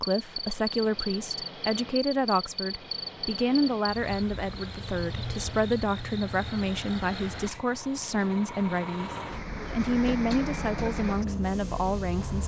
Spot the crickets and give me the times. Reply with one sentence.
You can hear the crickets from 0.0 to 7.5 s.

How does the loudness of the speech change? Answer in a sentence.
The loudness of the speech stays about the same.